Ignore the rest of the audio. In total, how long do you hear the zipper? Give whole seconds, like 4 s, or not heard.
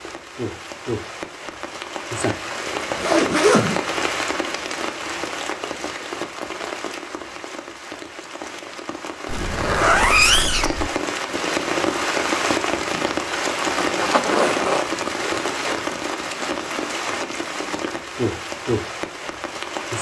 5 s.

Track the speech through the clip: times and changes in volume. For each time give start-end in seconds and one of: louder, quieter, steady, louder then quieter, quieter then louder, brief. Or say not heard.
not heard.